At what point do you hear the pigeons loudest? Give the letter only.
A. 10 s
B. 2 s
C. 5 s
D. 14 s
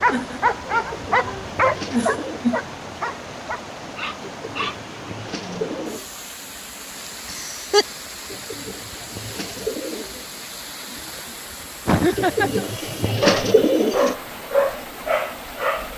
D.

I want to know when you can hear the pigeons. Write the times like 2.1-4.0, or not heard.
0.7-2.5, 4.2-6.0, 8.2-10.2, 12.2-14.2.